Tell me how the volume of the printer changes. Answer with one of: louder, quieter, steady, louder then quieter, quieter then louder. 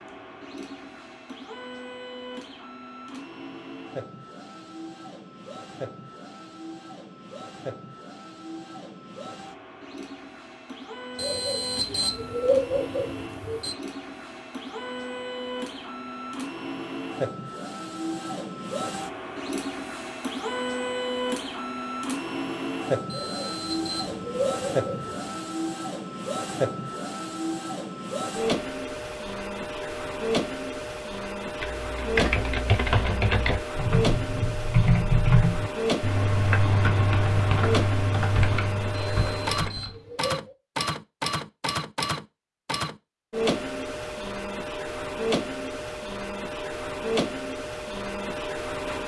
louder.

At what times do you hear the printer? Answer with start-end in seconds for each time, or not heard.
0.0-49.0.